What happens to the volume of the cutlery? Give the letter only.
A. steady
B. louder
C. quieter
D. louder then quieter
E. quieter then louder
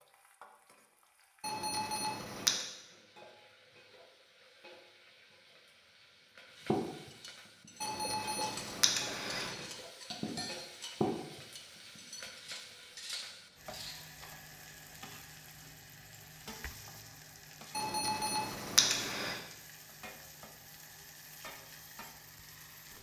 D.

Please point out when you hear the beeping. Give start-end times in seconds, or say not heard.
1.4-2.6, 7.8-9.5, 17.8-19.4.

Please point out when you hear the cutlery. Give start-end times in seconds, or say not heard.
6.5-14.2.